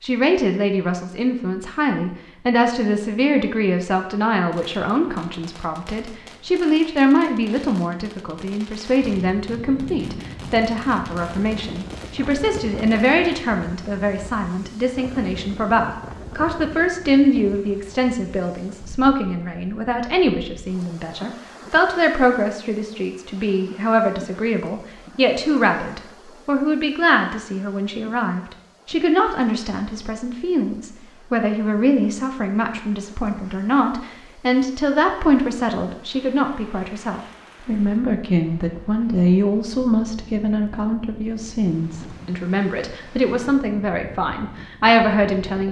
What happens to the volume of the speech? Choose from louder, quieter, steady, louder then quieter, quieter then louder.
steady.